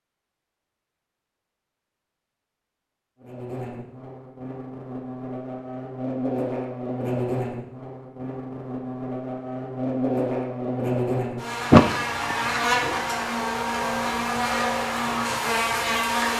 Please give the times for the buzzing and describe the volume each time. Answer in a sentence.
The buzzing can be heard from 3.2 to 16.3 s, getting louder.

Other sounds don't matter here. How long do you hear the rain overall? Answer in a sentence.
You can't hear the rain here.